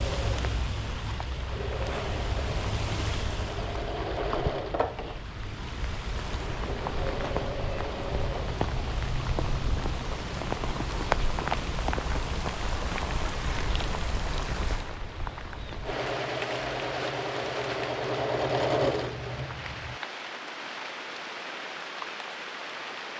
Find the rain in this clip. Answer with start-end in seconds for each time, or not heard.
0.0-23.1.